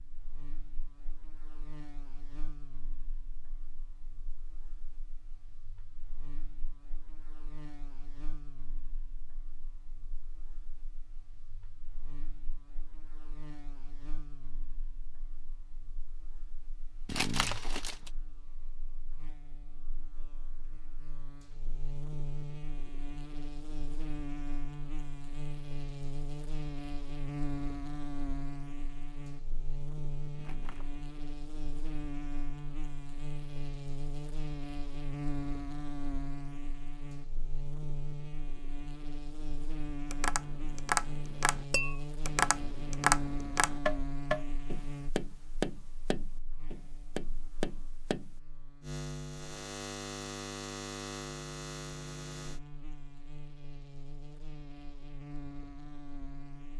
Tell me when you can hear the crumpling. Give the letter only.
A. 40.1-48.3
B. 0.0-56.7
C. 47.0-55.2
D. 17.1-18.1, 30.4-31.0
D.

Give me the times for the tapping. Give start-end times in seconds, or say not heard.
40.1-48.3.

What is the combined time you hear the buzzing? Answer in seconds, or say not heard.
57 s.